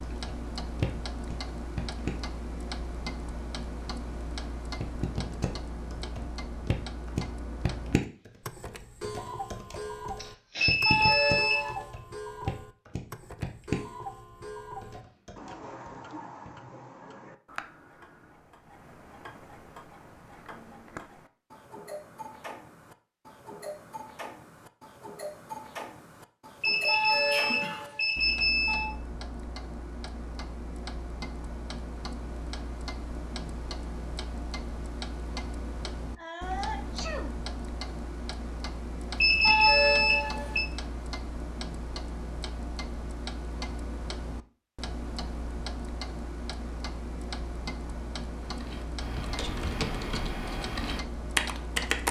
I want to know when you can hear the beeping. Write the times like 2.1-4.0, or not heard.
10.6-11.8, 26.6-28.9, 39.2-40.6.